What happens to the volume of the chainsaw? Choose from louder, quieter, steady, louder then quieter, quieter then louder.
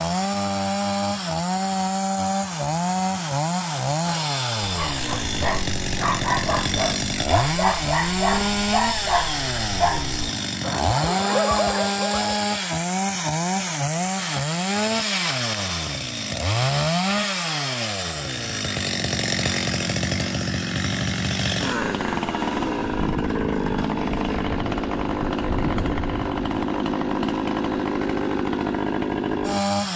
steady.